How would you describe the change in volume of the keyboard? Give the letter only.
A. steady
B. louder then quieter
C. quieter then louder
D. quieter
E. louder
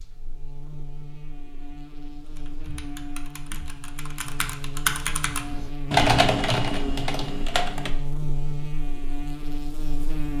B.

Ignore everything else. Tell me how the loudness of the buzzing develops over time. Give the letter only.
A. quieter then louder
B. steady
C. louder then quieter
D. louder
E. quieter
D.